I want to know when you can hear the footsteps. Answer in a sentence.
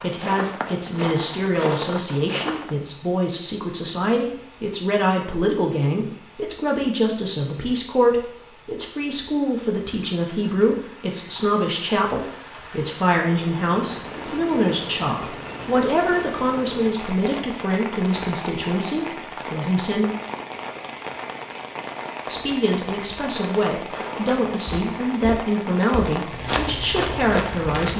You can hear the footsteps from 0.0 to 2.7 s and from 23.2 to 27.9 s.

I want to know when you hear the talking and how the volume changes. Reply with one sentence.
You can hear the talking from 0.0 to 20.1 s, at a steady volume; and from 22.2 to 27.9 s, at a steady volume.